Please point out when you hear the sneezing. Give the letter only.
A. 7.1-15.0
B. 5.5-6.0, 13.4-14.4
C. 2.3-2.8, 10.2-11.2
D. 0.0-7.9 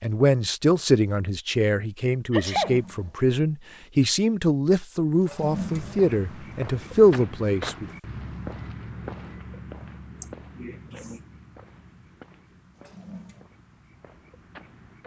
C.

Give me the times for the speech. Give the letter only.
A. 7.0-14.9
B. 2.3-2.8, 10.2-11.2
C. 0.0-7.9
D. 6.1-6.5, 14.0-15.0
C.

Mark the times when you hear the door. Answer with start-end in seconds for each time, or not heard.
not heard.